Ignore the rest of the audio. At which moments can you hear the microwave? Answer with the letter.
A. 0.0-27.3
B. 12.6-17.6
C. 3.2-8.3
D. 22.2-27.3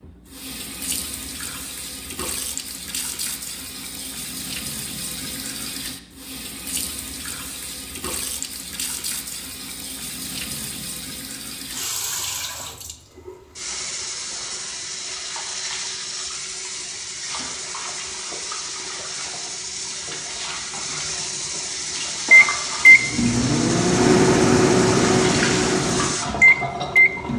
D.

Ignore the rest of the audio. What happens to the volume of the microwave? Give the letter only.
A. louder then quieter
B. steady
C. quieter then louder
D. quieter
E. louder
C.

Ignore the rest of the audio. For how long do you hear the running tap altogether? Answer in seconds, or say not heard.
27 s.